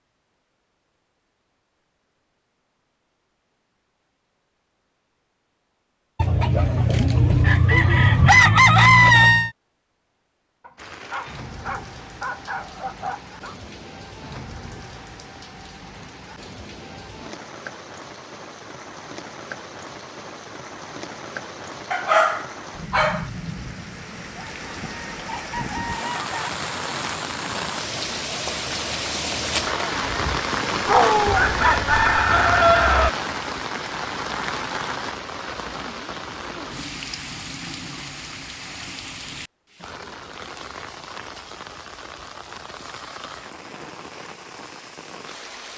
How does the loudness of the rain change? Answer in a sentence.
The loudness of the rain goes up, then down.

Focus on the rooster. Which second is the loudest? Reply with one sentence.
The loudest moment of the rooster is at 9 seconds.